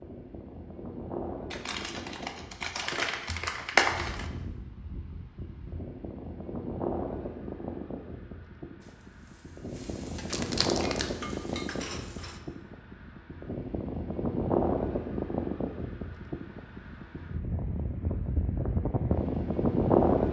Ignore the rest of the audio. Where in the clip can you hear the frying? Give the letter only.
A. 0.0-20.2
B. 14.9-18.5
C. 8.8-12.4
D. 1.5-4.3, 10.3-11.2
C.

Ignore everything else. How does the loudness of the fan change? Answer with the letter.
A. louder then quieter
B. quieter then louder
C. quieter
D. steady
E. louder
E.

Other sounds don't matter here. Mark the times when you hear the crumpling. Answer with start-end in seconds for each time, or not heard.
1.5-4.3, 10.3-11.2.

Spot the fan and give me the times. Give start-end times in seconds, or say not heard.
0.0-20.2.